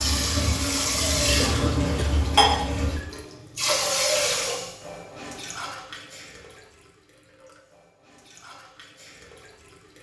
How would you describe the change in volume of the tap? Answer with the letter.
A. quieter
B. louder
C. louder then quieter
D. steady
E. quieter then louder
A.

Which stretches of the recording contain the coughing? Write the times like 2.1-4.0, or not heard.
1.4-2.2.